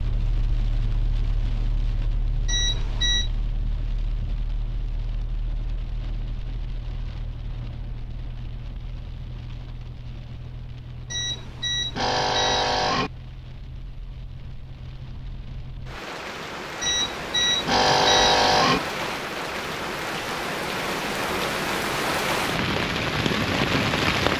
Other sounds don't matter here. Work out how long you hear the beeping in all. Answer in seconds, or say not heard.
5 s.